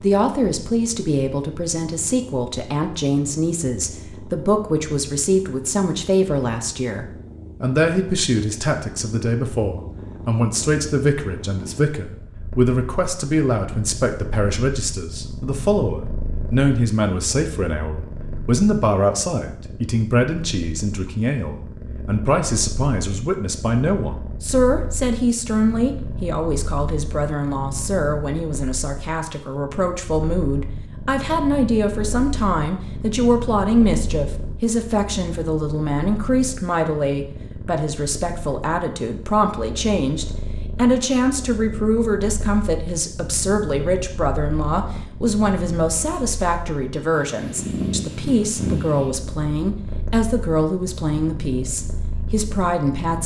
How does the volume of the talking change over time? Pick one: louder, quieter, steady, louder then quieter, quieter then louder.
steady.